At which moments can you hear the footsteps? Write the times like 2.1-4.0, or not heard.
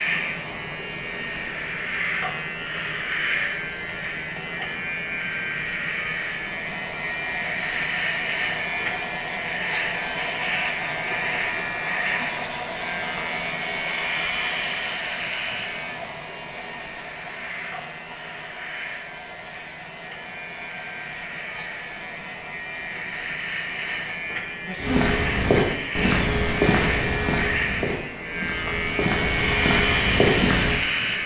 24.8-30.8.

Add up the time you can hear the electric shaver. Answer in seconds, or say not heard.
31 s.